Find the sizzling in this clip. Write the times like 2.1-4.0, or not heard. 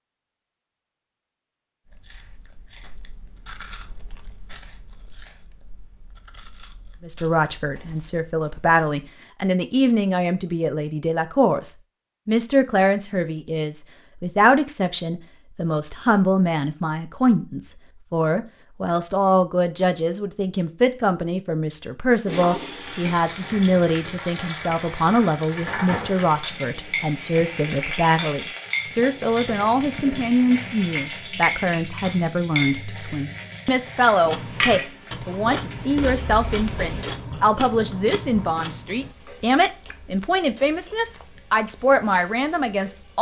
22.2-43.1.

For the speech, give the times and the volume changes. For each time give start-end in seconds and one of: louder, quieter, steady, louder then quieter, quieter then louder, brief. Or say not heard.
7.0-43.1 steady.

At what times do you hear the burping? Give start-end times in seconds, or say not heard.
not heard.